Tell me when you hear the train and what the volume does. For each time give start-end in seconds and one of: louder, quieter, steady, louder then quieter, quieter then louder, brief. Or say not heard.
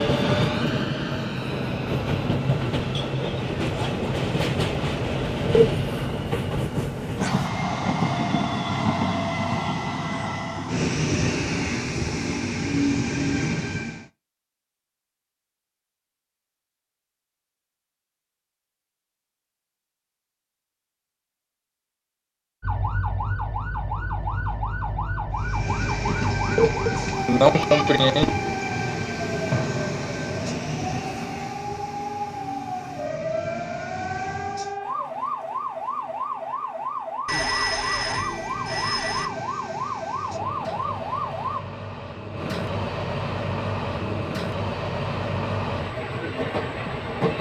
0.0-14.1 steady
25.4-34.8 quieter
37.8-47.3 louder.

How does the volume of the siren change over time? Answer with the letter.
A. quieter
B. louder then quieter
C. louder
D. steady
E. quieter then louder
D.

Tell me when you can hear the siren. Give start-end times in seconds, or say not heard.
22.6-41.6.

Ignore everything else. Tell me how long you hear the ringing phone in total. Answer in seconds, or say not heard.
2 s.